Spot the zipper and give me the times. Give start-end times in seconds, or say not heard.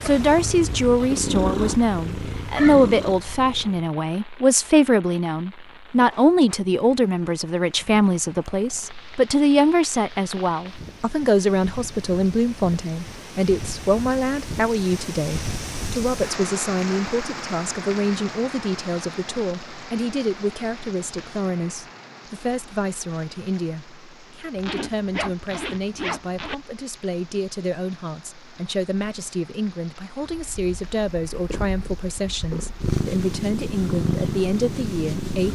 24.6-26.6.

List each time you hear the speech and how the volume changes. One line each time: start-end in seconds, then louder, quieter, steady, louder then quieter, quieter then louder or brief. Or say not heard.
0.0-35.4 quieter.